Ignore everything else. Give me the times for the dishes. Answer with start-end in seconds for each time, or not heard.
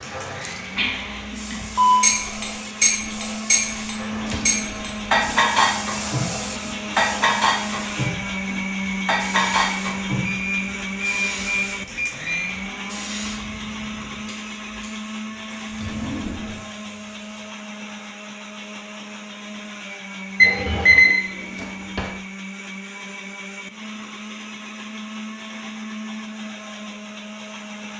2.0-10.3.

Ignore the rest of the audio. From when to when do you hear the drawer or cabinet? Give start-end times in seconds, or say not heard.
4.1-5.4, 15.7-16.6, 21.2-22.2.